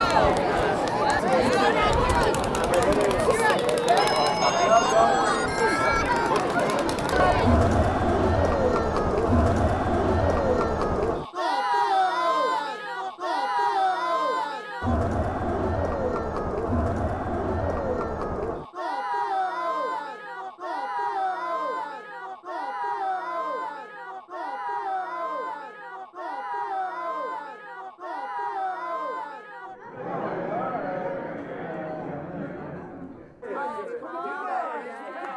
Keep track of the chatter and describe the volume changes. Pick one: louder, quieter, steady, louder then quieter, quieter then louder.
quieter.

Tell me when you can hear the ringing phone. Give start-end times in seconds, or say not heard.
4.0-6.0.